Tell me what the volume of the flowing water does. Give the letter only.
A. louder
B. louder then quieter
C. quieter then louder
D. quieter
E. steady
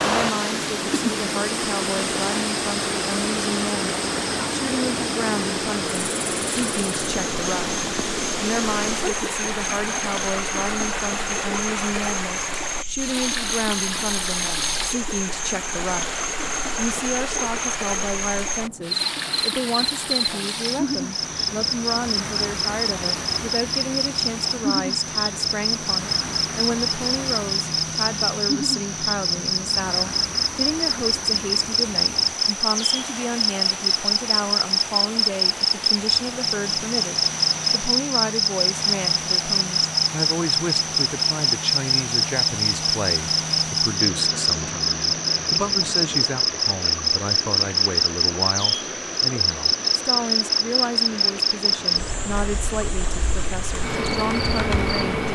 D.